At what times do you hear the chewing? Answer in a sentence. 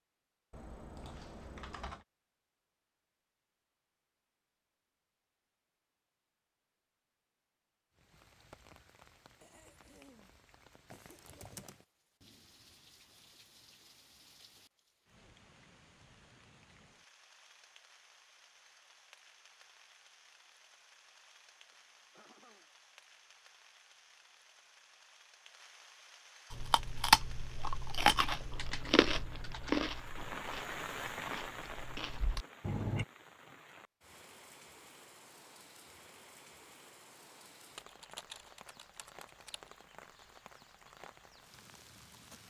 The chewing can be heard from 26.5 to 33.0 s.